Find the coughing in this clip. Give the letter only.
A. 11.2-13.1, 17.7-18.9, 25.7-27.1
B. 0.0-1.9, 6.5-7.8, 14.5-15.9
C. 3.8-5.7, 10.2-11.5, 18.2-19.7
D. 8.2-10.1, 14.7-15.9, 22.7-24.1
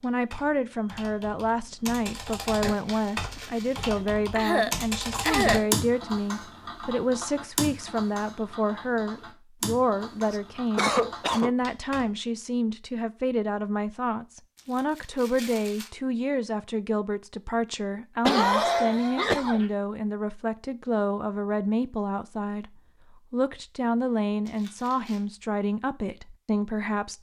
C.